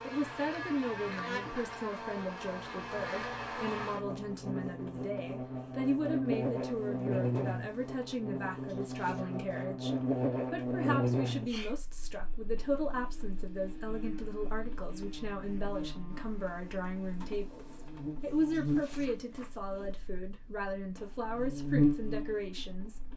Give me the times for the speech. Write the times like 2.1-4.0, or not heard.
0.0-23.1.